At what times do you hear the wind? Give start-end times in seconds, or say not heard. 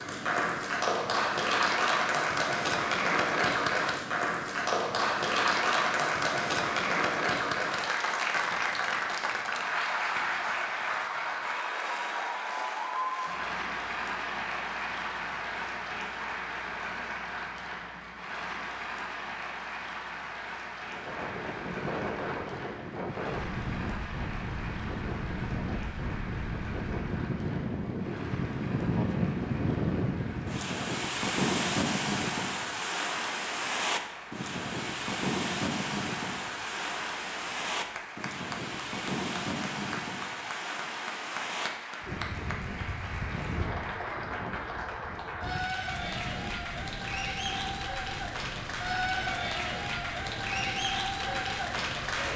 20.9-52.3.